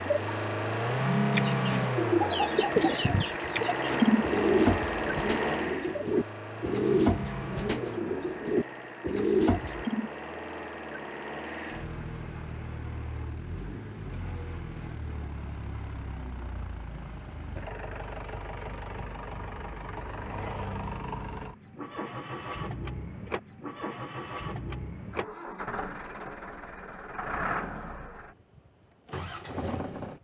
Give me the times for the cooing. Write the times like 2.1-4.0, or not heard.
1.4-9.8.